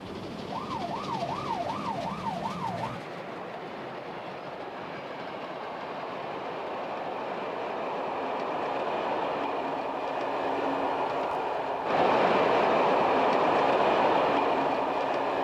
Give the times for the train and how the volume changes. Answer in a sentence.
The train can be heard from 0.0 to 15.3 s, getting louder.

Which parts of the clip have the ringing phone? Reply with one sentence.
You can't hear the ringing phone here.